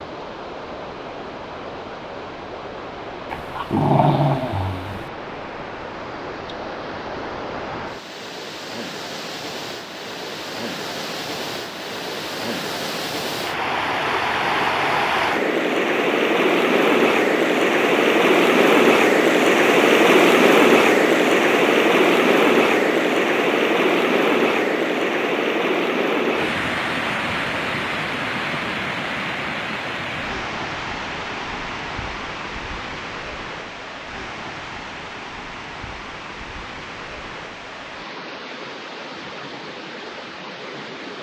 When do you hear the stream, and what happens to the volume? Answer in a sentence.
You can hear the stream from 0.0 to 41.1 s, getting louder then quieter.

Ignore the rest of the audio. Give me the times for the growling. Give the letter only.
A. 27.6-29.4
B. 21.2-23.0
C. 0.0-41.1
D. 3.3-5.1
D.